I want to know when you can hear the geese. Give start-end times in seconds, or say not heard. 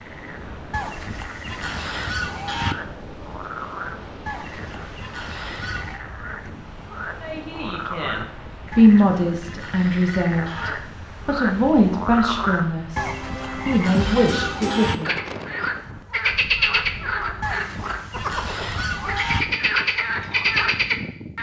0.7-2.8, 4.2-6.0, 8.7-10.8, 12.9-15.0, 17.4-19.4.